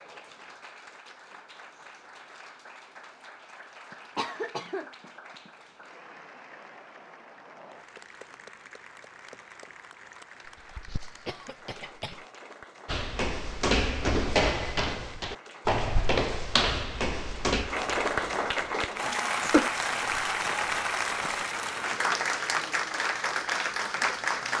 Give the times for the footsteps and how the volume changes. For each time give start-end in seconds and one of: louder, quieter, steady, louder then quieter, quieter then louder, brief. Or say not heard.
12.8-22.1 quieter.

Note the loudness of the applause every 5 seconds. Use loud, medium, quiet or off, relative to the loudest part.
quiet, quiet, quiet, loud, loud.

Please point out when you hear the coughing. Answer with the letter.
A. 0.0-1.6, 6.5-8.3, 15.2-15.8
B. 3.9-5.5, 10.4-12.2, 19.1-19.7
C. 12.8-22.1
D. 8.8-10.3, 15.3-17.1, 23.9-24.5
B.